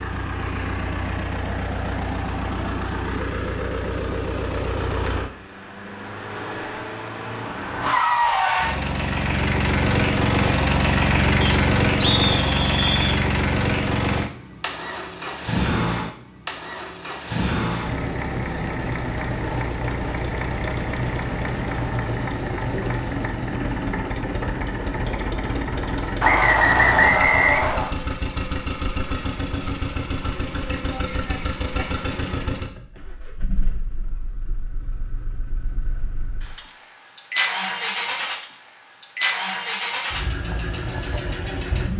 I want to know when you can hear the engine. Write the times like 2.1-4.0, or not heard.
0.0-41.9.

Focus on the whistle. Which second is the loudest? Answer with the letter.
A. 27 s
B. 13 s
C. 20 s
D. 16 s
A.